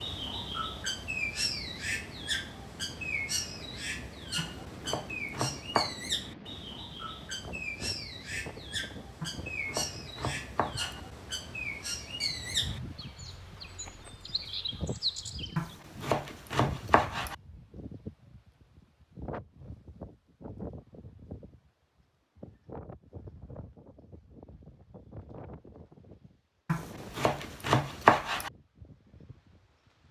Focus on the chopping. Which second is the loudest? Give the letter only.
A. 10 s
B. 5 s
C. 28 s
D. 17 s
C.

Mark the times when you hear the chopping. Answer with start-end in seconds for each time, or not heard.
4.3-6.0, 9.2-11.0, 15.6-17.4, 26.6-28.5.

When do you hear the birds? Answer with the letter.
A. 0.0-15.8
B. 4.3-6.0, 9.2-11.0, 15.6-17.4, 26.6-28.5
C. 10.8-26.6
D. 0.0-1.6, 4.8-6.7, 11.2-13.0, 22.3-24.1
A.